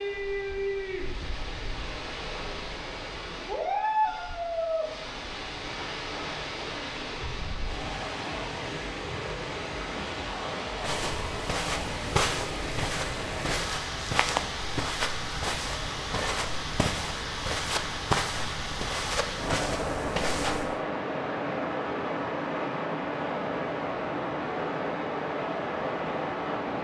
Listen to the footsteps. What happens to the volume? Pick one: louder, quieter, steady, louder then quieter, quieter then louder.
steady.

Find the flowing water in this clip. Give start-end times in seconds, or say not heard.
0.0-26.8.